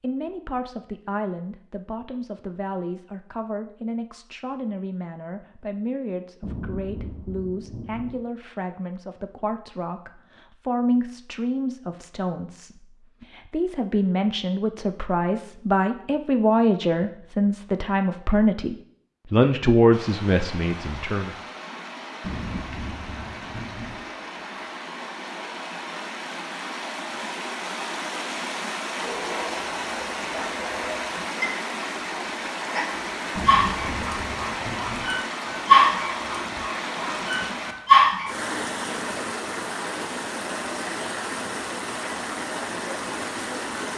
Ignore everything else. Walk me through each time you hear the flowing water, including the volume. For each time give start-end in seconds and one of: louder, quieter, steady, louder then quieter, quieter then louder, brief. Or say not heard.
19.9-43.9 louder.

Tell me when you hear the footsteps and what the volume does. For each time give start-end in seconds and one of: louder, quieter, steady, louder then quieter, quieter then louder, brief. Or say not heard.
not heard.